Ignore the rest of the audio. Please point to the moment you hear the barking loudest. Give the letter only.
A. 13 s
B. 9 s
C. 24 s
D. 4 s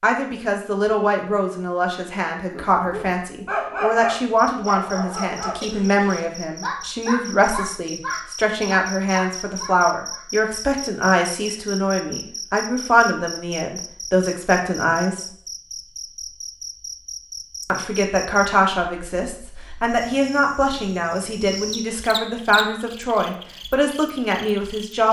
D.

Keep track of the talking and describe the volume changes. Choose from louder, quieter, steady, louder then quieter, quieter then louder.
steady.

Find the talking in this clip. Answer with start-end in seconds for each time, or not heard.
0.0-15.2, 17.6-25.0.